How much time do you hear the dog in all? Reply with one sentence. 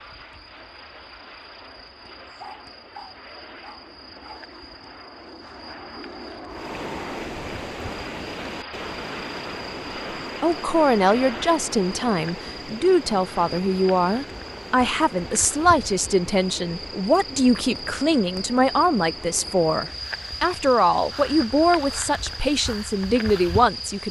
The dog can be heard for 2 seconds in total.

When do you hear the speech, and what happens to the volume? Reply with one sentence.
The speech can be heard from 10.4 to 24.0 s, at a steady volume.